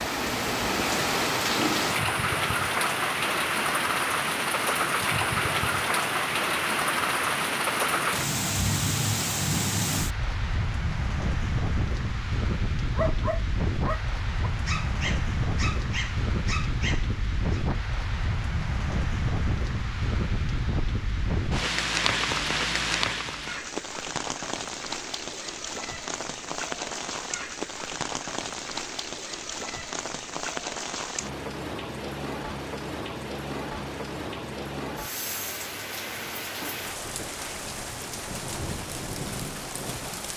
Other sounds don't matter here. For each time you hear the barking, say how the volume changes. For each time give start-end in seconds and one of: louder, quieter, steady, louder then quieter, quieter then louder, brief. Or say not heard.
12.9-17.6 steady.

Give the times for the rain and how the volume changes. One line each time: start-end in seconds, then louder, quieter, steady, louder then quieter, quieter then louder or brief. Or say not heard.
0.0-40.3 quieter.